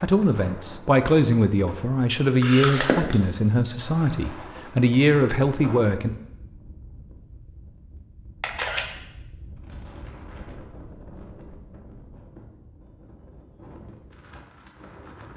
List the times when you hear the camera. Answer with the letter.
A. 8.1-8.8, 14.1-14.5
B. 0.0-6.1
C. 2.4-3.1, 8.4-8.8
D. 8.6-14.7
C.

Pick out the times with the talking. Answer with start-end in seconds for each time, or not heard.
0.0-6.1.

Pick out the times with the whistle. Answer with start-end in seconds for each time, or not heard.
not heard.